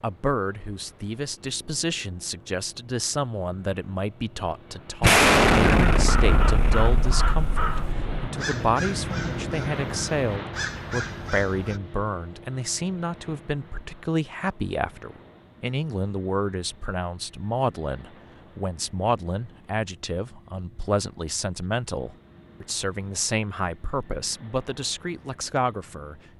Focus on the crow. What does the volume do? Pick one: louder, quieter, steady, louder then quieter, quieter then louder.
quieter then louder.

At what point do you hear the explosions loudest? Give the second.
5 s.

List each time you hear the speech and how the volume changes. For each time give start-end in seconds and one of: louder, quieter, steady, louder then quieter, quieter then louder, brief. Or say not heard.
0.0-26.2 steady.